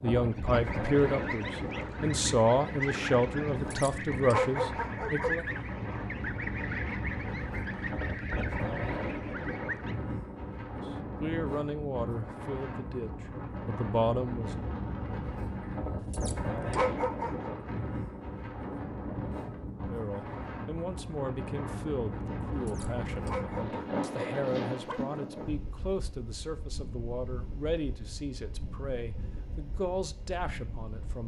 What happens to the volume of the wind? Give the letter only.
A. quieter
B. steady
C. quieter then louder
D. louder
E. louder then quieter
A.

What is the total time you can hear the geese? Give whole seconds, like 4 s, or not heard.
10 s.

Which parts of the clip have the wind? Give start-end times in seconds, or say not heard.
0.0-31.2.